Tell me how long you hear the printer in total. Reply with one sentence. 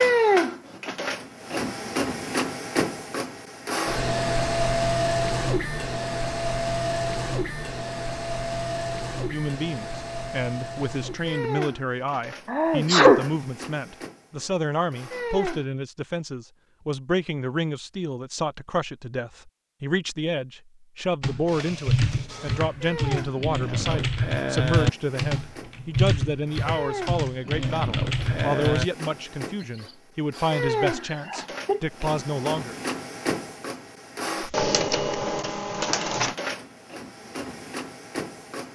The printer can be heard for 33 seconds in total.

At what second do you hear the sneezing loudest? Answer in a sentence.
The volume of the sneezing peaks at 13 seconds.